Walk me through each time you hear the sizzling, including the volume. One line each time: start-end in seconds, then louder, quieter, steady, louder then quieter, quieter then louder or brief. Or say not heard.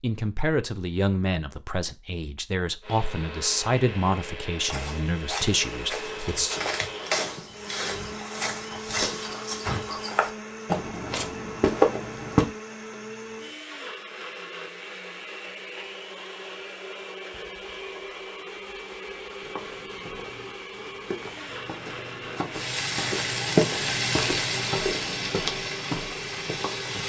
22.5-27.0 quieter.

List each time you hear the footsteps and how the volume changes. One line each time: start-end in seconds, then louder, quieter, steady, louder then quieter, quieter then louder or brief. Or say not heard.
4.7-12.4 louder
19.4-26.9 louder then quieter.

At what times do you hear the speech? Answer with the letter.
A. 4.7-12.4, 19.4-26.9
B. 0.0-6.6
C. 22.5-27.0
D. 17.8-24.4
B.